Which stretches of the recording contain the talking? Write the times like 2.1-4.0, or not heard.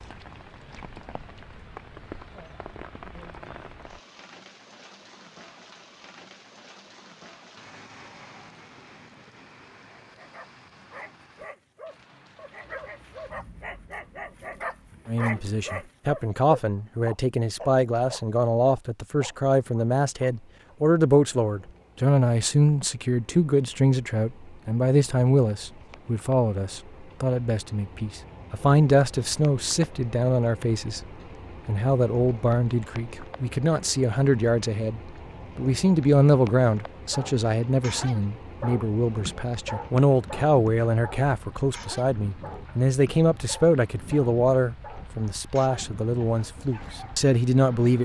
15.1-31.0, 31.6-47.9.